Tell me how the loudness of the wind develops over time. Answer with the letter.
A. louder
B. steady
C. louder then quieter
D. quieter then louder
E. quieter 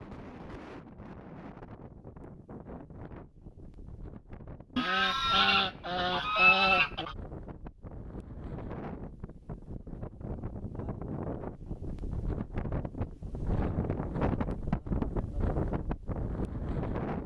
A.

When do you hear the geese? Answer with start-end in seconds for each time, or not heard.
4.8-7.2.